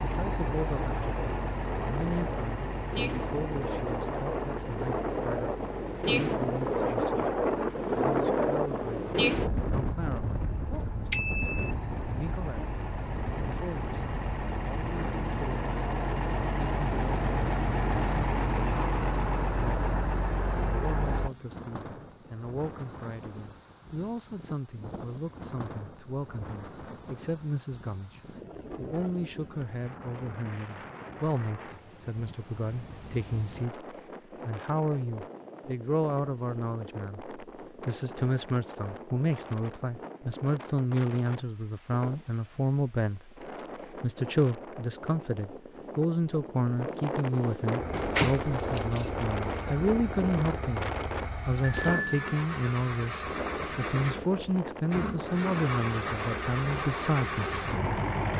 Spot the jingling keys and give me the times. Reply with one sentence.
You can hear the jingling keys from 47.9 to 49.6 s.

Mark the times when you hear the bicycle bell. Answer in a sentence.
The bicycle bell can be heard from 11.1 to 11.7 s and from 51.6 to 52.4 s.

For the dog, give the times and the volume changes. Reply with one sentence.
You can't hear the dog here.